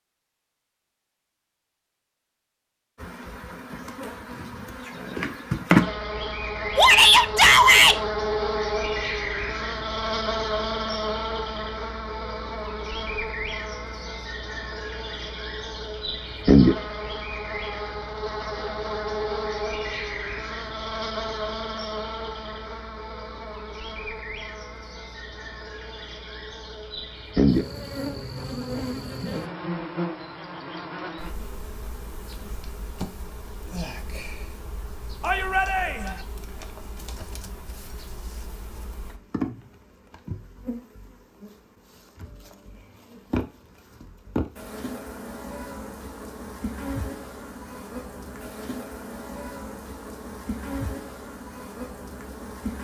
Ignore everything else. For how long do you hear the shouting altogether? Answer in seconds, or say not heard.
2 s.